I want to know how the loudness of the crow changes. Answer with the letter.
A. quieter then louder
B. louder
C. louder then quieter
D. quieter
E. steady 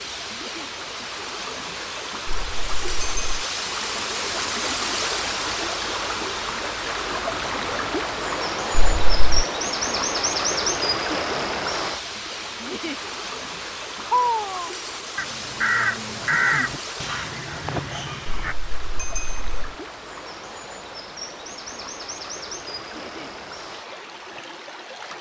C.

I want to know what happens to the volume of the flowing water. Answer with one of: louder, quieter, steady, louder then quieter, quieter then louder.
quieter.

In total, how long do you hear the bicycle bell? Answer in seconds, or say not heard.
3 s.